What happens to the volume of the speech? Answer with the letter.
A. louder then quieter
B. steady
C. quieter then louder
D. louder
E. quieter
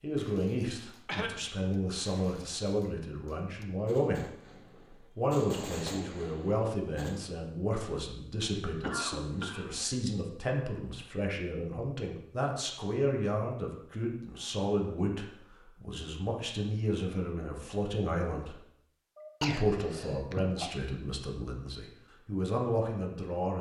B.